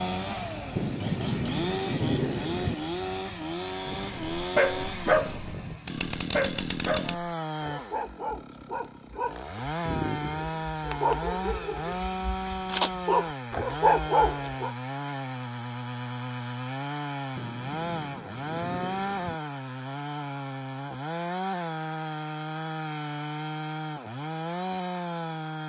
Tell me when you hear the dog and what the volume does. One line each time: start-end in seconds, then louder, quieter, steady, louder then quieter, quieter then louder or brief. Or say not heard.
4.3-14.7 quieter then louder.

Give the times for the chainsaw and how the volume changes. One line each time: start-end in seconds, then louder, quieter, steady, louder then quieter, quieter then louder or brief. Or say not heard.
0.0-25.6 steady.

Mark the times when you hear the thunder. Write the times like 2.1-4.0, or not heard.
0.8-2.8, 17.4-19.4.